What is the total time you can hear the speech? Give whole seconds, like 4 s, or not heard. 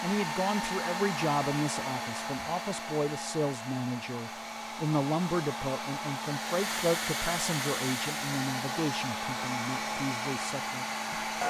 11 s.